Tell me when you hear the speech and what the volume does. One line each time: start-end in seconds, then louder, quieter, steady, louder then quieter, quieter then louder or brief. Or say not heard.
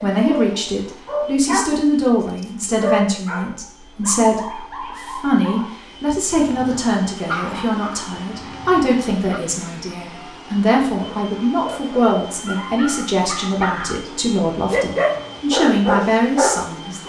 0.0-17.0 steady.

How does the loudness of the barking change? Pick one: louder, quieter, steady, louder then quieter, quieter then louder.
quieter then louder.